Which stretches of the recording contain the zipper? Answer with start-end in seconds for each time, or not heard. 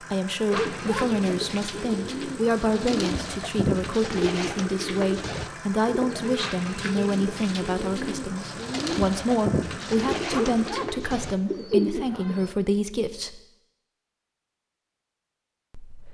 0.5-1.1, 10.3-10.9.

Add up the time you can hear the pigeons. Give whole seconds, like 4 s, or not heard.
12 s.